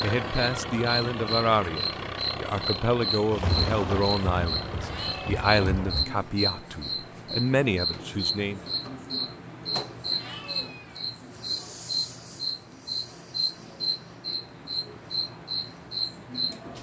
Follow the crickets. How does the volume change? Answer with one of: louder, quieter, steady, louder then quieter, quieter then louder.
steady.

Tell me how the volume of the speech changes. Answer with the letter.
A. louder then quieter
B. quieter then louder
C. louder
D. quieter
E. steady
E.